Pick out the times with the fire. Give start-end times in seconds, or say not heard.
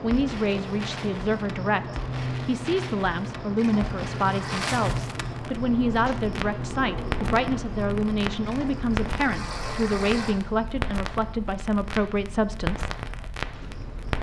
0.0-14.1.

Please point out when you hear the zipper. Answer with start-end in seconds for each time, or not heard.
not heard.